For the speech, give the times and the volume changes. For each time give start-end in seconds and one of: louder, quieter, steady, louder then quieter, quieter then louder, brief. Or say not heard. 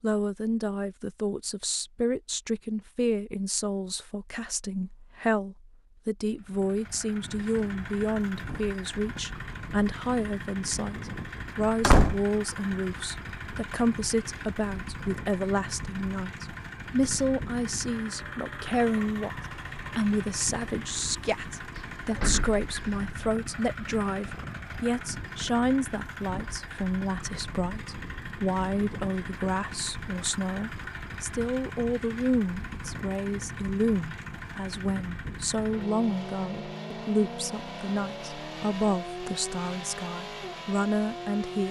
0.0-19.3 steady
19.9-41.6 steady.